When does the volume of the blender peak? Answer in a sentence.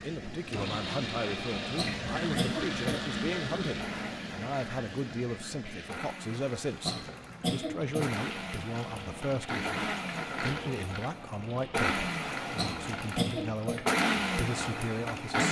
The volume of the blender peaks at 14 seconds.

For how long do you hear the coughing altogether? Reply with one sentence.
You can hear the coughing for 4 seconds altogether.